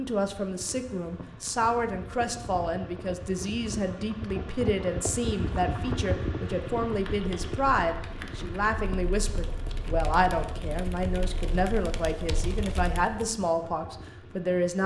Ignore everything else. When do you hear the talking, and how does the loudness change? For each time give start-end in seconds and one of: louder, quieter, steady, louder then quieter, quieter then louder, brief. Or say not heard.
0.0-14.8 steady.